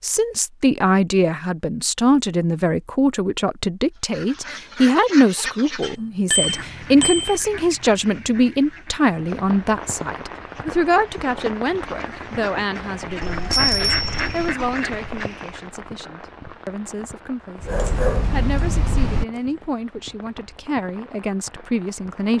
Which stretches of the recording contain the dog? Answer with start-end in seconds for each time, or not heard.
17.6-19.4.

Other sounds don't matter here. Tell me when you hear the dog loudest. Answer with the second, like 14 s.
18 s.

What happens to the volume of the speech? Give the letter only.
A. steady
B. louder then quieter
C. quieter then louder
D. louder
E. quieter
E.